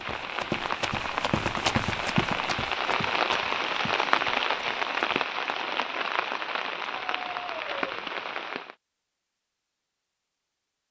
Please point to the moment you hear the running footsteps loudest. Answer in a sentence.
The volume of the running footsteps peaks at 2 seconds.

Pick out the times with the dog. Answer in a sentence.
You can hear the dog from 7.0 to 8.0 s.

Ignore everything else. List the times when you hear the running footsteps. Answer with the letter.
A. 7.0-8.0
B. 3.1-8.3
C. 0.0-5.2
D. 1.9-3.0
C.